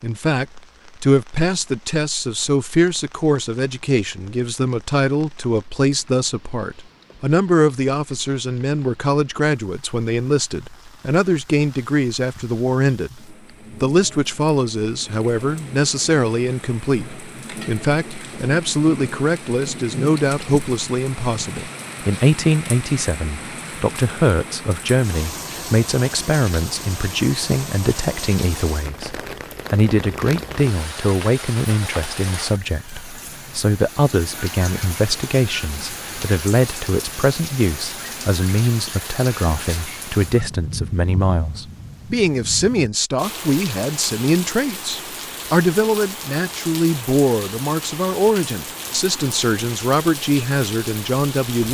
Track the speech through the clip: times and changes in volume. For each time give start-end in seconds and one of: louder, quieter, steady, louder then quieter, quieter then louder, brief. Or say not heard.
0.0-51.6 steady.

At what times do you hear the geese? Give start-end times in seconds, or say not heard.
not heard.